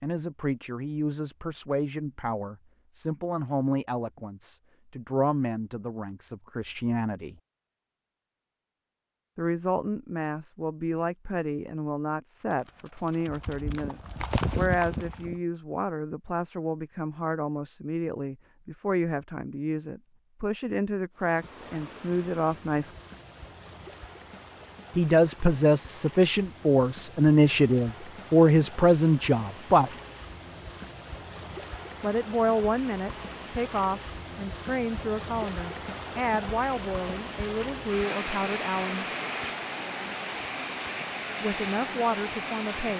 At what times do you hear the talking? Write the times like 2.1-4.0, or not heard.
0.0-7.3, 9.3-22.9, 24.9-29.9, 32.0-39.0, 41.4-42.9.